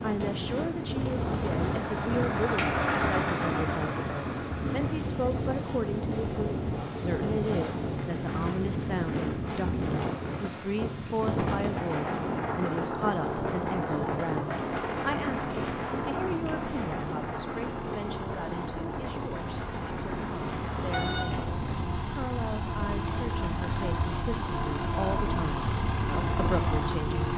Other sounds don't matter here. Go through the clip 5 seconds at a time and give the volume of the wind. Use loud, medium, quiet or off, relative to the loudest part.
loud, loud, loud, loud, medium, medium.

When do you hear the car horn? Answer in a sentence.
You can hear the car horn from 20.9 to 21.5 s.